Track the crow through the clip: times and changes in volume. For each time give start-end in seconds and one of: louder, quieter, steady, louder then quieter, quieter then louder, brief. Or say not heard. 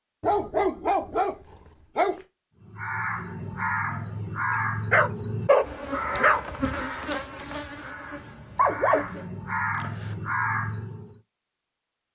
2.6-11.2 quieter then louder.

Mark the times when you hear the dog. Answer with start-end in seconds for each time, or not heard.
0.2-2.2, 4.9-6.4, 8.6-10.1.